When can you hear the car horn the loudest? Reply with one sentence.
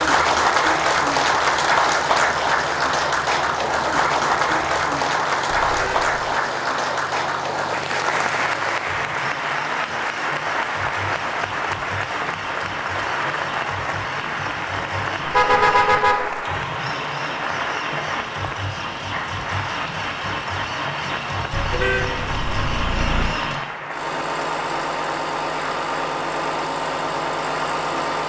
The loudest moment of the car horn is at 16 seconds.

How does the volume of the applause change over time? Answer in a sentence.
The volume of the applause goes down.